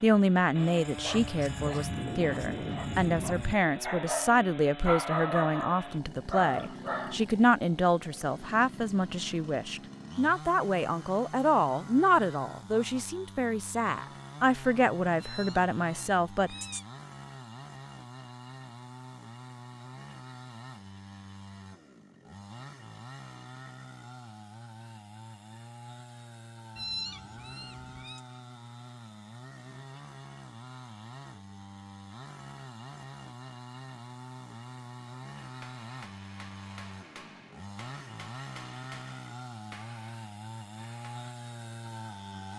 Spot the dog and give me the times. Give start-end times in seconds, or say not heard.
0.6-7.2.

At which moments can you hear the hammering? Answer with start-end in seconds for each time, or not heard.
35.4-41.4.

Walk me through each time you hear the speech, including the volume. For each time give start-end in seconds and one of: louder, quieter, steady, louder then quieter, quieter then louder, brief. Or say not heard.
0.0-16.6 steady.